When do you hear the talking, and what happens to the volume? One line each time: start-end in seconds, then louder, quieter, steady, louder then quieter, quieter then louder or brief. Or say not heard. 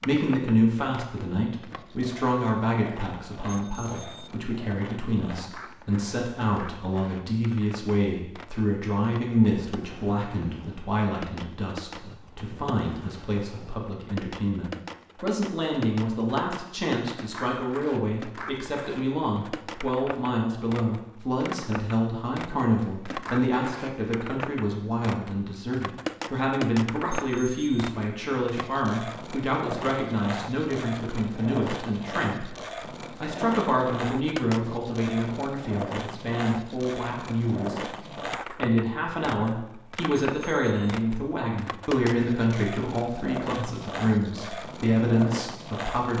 0.0-46.1 steady.